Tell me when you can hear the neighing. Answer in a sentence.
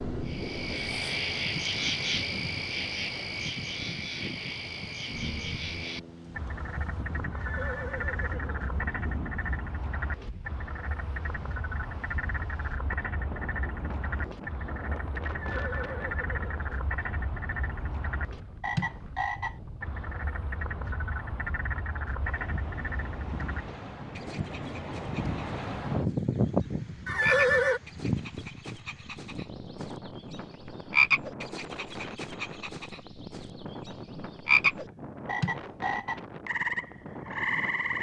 You can hear the neighing from 7.3 to 8.7 s, from 15.4 to 16.7 s and from 27.1 to 27.8 s.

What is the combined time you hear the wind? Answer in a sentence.
The wind can be heard for 38 seconds in total.